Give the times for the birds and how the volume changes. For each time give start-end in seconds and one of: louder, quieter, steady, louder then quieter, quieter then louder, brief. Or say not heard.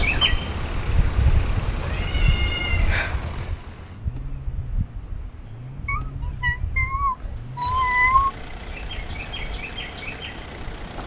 0.0-11.0 quieter then louder.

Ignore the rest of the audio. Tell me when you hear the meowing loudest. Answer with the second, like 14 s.
8 s.